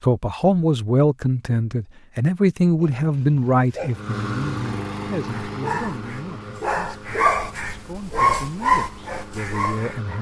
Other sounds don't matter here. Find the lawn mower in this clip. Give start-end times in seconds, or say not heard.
3.9-10.1.